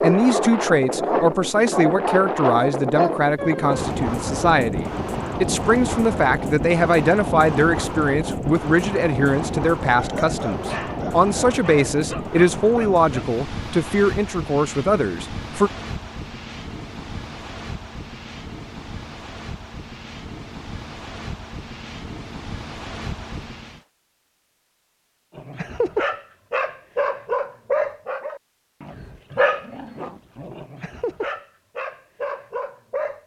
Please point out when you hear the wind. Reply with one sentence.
You can hear the wind from 0.0 to 23.9 s.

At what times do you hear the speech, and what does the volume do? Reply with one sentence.
The speech can be heard from 0.0 to 15.7 s, at a steady volume.